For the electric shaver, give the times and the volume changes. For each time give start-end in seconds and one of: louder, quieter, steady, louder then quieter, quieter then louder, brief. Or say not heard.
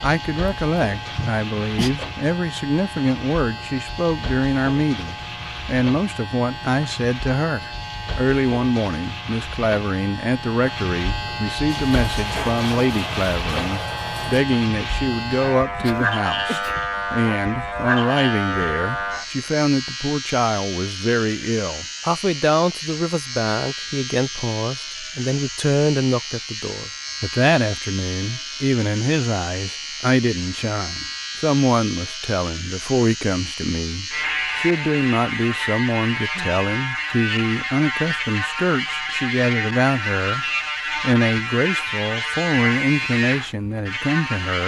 0.0-44.6 louder.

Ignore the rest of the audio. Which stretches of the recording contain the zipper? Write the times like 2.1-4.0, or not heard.
not heard.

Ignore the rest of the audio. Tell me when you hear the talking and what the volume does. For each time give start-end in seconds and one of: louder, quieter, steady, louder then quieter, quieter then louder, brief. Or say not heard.
0.0-44.6 steady.